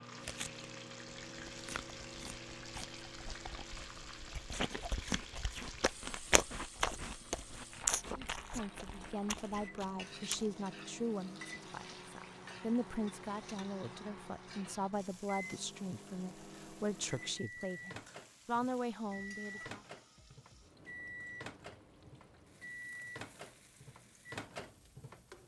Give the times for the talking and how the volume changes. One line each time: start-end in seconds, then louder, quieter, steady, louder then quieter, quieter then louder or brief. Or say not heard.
8.2-19.8 steady.